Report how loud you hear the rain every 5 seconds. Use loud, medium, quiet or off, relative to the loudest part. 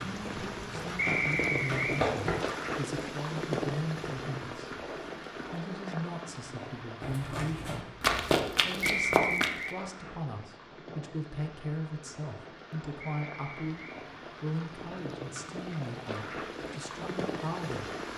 loud, medium, medium, loud.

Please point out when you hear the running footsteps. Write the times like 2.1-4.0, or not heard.
0.0-2.5, 7.0-9.5.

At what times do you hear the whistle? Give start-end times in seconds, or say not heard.
0.9-2.0, 8.8-9.8, 13.0-14.0.